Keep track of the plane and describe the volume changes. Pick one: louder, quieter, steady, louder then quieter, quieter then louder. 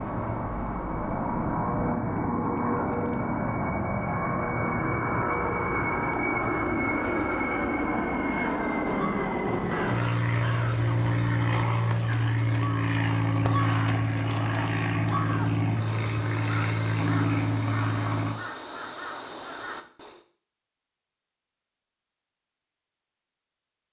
steady.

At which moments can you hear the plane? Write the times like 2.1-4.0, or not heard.
0.0-18.4.